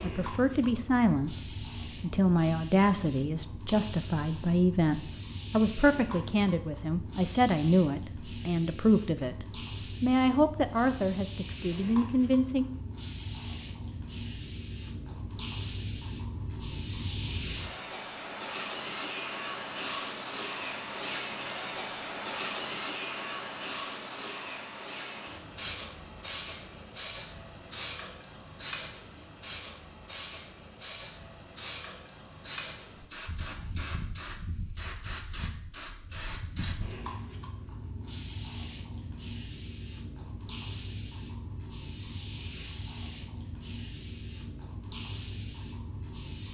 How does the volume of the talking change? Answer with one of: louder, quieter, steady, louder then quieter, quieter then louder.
steady.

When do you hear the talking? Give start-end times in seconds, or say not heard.
0.0-12.7.